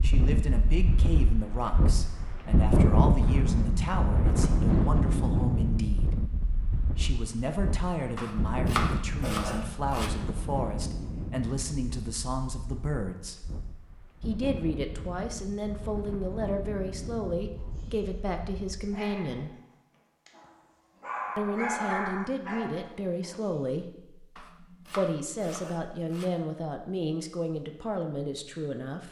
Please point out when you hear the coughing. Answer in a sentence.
The coughing can't be heard in this clip.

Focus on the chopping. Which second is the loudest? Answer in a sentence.
The loudest moment of the chopping is at 9 seconds.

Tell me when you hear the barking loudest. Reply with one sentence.
The loudest moment of the barking is at 22 seconds.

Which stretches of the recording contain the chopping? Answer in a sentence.
The chopping can be heard from 8.2 to 10.1 s and from 24.4 to 26.3 s.